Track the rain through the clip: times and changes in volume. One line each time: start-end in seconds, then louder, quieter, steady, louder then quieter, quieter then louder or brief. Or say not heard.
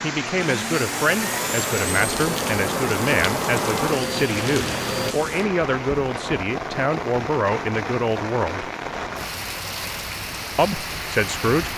0.0-11.7 steady.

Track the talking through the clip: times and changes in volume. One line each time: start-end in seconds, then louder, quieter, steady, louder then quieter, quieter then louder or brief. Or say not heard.
0.0-8.7 steady
10.6-11.7 brief.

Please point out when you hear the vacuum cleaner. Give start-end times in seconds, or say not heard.
0.0-5.2.